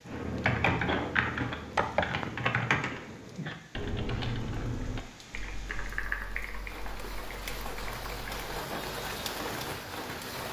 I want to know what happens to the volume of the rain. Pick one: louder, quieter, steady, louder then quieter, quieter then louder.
louder.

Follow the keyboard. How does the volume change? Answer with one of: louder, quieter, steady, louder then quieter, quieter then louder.
quieter.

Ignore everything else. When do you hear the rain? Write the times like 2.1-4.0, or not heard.
0.0-10.4.